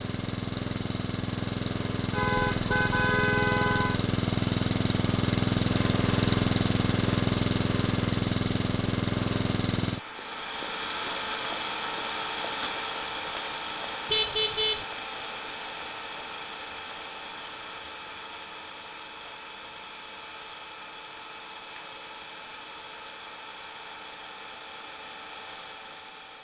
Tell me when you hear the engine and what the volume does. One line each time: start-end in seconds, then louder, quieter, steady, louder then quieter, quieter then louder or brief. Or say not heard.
0.0-26.3 quieter.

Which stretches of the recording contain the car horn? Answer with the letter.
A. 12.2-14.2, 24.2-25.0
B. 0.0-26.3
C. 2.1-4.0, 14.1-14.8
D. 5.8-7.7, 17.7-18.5
C.